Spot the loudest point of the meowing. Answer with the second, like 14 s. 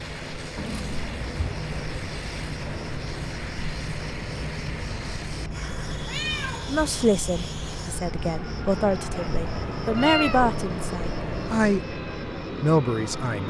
10 s.